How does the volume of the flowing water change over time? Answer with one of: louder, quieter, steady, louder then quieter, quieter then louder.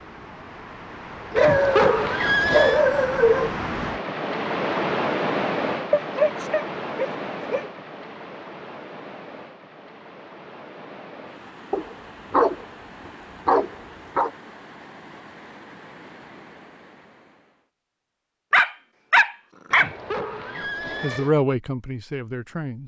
louder then quieter.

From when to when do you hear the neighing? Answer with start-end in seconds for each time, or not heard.
1.4-2.8, 19.7-21.3.